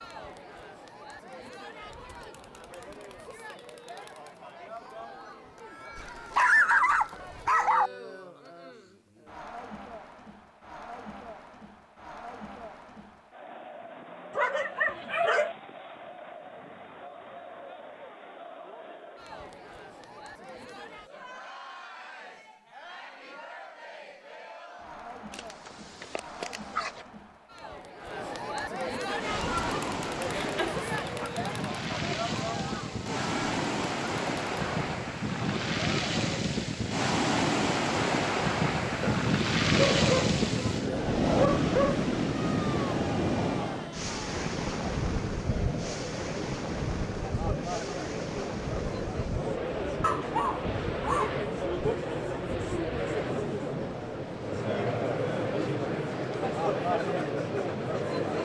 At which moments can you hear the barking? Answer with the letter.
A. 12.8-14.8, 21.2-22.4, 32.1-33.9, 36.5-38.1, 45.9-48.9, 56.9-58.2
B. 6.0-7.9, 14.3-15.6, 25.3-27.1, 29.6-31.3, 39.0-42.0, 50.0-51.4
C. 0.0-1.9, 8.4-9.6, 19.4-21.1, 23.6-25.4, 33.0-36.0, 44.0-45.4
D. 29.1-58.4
B.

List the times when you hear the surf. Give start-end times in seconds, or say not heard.
29.1-58.4.